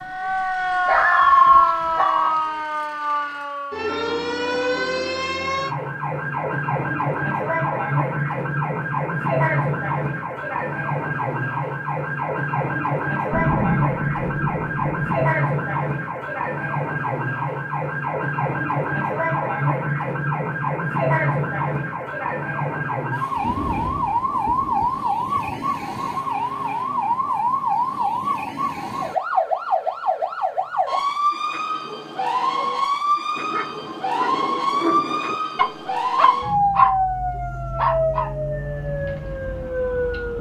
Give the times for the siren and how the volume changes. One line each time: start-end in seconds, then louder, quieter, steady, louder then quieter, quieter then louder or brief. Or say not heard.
0.0-40.3 steady.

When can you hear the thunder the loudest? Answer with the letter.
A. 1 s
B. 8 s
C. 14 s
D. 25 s
C.